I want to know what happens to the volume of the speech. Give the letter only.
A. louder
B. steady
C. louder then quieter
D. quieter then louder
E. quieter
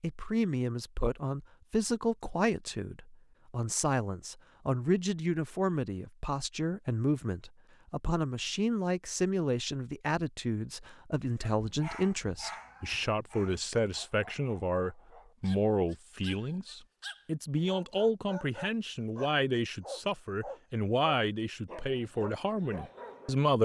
B.